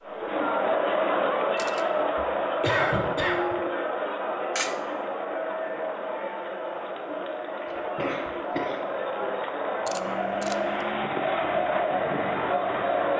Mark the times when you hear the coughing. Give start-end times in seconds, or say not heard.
2.1-3.5, 7.7-9.2.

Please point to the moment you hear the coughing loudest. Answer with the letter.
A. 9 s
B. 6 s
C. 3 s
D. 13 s
C.